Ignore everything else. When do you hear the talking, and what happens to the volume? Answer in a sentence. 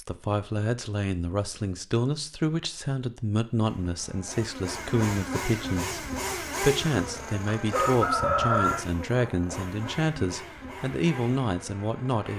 You can hear the talking from 0.0 to 12.3 s, at a steady volume.